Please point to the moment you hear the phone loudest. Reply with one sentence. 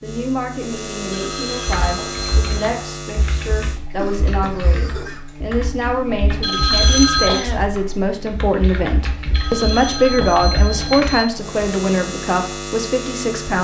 The loudest moment of the phone is at 7 seconds.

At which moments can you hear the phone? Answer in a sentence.
You can hear the phone from 1.1 to 2.7 s, from 6.4 to 7.5 s and from 9.3 to 11.2 s.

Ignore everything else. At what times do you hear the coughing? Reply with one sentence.
You can hear the coughing from 4.0 to 5.2 s and from 7.2 to 7.7 s.